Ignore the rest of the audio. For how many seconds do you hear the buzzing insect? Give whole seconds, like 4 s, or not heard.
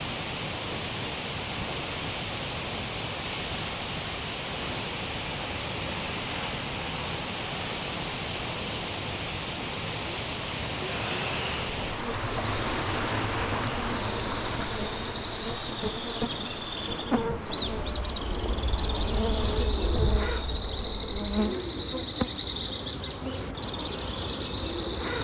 14 s.